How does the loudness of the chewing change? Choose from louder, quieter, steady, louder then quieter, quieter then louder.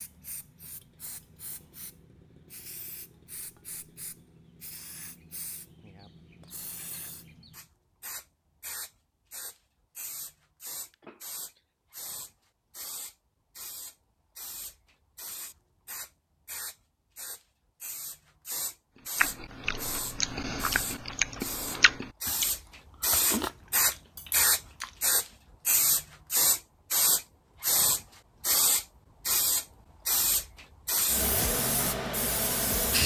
quieter.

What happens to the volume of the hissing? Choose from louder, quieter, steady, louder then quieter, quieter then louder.
louder.